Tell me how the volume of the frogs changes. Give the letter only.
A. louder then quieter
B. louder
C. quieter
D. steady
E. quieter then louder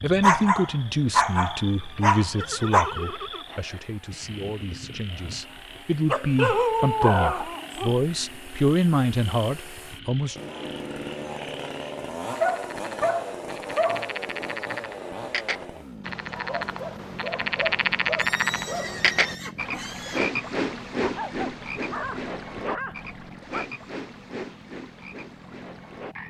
A.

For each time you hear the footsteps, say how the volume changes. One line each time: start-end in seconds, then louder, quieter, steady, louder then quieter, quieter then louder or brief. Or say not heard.
not heard.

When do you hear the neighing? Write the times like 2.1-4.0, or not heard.
2.3-3.6, 18.1-20.2.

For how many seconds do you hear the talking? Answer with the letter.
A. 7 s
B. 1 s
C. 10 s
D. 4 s
C.